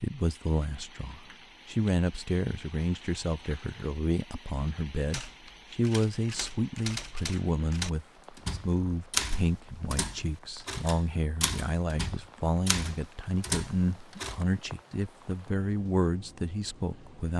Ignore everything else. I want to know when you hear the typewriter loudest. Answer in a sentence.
The volume of the typewriter peaks at 9 seconds.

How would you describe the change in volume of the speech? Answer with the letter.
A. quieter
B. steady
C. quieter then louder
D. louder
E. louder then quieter
B.